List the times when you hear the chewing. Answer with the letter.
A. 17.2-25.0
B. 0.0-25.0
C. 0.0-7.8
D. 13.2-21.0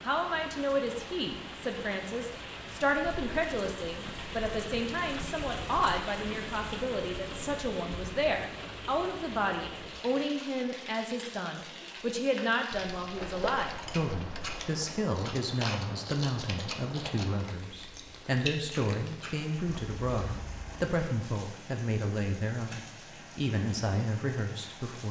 D.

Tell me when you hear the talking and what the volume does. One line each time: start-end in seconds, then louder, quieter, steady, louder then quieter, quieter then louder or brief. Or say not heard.
0.0-25.0 steady.